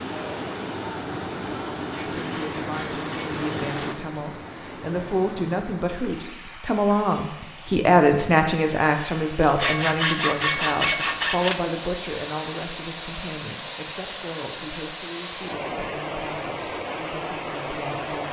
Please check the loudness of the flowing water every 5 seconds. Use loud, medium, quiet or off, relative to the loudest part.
loud, medium, loud, loud.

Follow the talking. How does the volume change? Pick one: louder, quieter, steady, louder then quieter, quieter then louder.
louder then quieter.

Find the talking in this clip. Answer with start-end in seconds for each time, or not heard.
2.0-18.2.